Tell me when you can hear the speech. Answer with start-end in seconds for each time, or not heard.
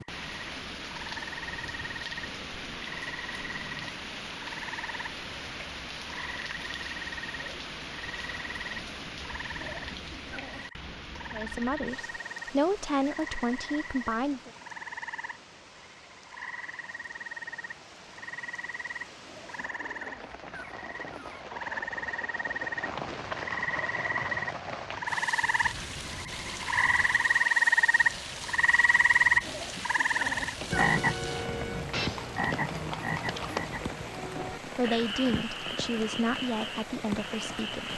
11.3-14.5, 34.6-37.9.